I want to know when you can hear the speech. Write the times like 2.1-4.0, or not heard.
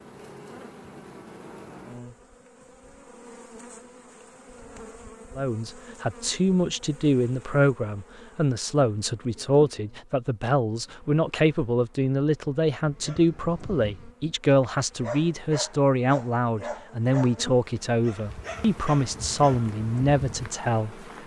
5.3-20.9.